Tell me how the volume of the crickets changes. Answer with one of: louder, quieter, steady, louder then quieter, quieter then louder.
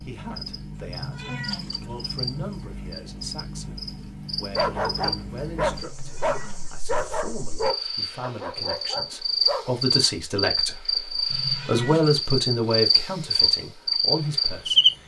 louder.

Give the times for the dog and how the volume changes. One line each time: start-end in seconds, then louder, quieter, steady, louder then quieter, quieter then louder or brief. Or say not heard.
4.5-9.7 quieter.